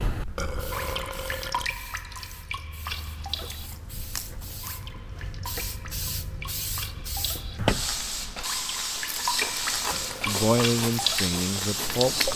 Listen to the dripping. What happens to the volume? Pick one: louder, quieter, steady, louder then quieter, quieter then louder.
quieter then louder.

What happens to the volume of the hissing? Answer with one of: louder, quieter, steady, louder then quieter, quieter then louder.
louder.